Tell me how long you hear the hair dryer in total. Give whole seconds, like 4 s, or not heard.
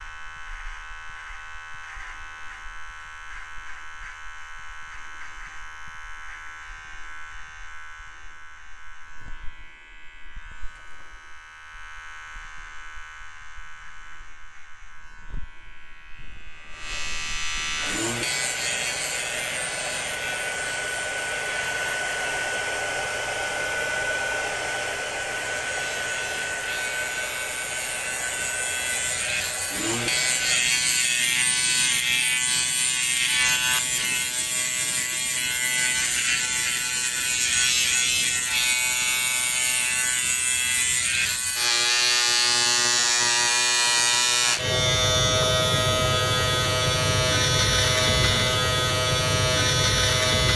13 s.